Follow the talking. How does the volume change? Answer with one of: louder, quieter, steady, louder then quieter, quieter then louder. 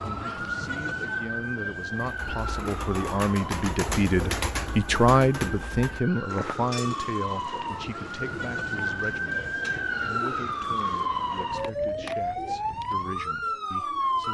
louder then quieter.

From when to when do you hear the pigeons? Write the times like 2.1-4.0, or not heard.
1.9-13.4.